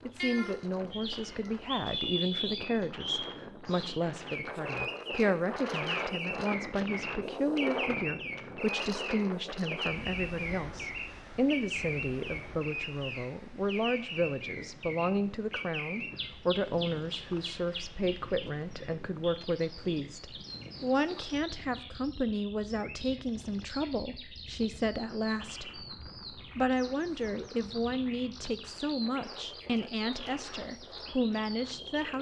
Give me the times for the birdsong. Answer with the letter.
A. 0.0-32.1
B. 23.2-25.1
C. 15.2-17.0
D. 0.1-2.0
A.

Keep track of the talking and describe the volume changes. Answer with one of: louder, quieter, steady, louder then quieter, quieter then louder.
steady.